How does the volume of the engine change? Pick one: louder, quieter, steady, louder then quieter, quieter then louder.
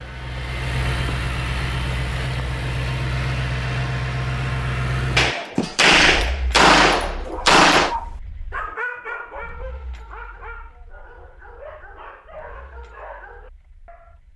quieter.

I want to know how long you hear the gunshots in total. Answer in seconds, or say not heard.
3 s.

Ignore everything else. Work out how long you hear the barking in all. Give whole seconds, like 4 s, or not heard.
7 s.